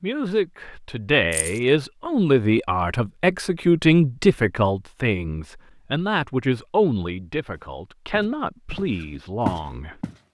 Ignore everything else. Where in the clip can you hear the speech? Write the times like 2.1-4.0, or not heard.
0.0-10.0.